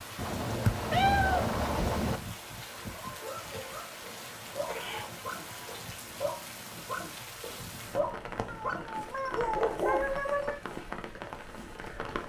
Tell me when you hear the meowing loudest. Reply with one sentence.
The loudest moment of the meowing is at 1 second.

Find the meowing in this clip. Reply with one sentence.
The meowing can be heard from 0.1 to 2.2 s, from 4.7 to 5.9 s and from 8.4 to 10.6 s.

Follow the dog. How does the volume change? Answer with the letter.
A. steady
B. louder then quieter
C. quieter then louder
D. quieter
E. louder
E.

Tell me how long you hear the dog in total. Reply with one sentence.
You can hear the dog for 7 seconds altogether.